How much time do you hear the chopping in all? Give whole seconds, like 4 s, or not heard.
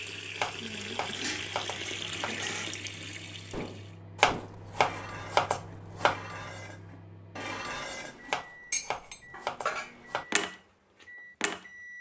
6 s.